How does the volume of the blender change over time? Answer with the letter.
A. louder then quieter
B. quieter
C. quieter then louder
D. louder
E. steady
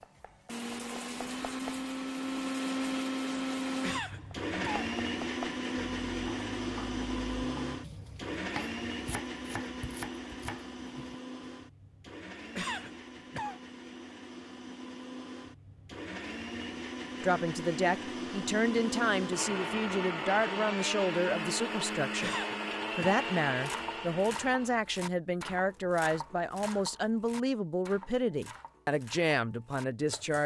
C.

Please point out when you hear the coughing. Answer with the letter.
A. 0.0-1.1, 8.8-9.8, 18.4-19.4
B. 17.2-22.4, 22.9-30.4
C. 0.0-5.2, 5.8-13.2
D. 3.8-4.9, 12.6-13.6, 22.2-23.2
D.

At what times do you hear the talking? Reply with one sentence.
You can hear the talking from 17.2 to 22.4 s and from 22.9 to 30.4 s.